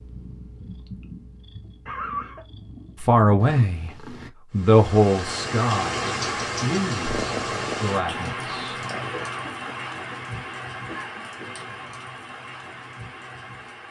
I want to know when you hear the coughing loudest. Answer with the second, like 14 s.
2 s.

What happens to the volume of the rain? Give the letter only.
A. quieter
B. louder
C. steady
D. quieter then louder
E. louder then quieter
A.